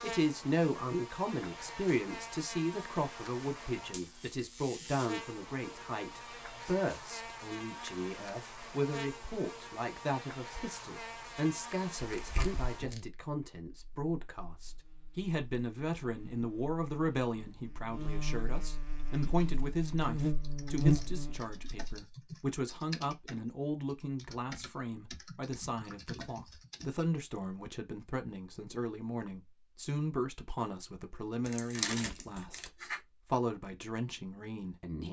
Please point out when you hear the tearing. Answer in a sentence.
The tearing can be heard from 12.1 to 13.0 s and from 31.4 to 33.0 s.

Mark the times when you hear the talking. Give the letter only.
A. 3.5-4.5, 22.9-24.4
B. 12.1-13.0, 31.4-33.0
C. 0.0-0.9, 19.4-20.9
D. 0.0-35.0
D.